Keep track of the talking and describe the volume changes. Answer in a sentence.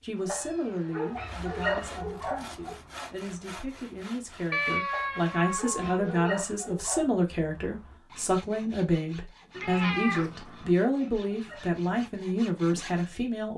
The volume of the talking goes up.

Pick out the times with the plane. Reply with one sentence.
The plane can't be heard in this clip.